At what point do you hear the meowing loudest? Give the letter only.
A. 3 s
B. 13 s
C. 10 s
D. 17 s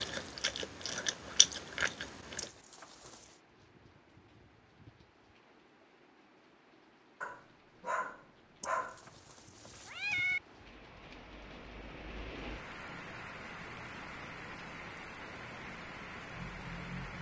C.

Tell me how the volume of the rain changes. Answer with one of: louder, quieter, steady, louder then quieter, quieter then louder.
louder.